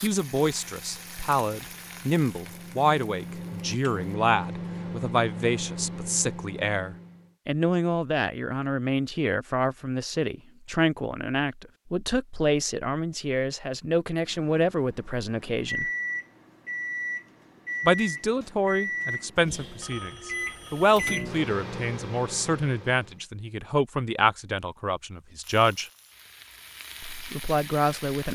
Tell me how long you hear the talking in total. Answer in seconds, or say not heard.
25 s.